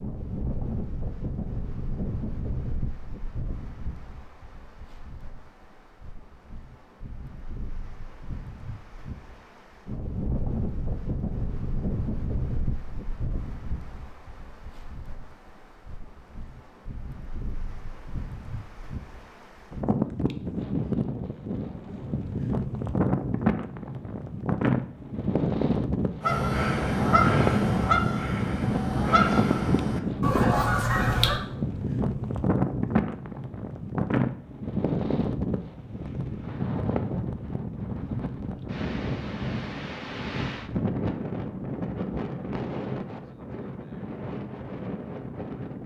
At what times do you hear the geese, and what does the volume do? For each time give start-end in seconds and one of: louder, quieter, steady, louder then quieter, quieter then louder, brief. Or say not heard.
26.2-31.4 steady.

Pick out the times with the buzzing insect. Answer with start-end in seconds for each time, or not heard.
not heard.